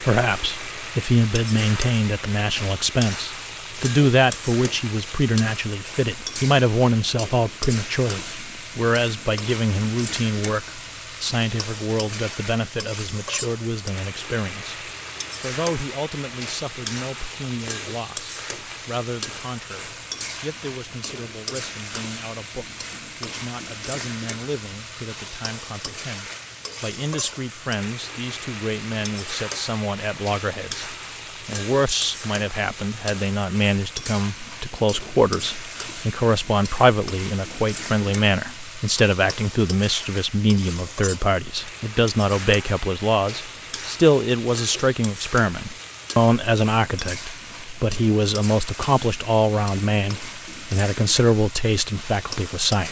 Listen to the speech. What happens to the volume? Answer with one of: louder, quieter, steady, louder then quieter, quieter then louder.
quieter then louder.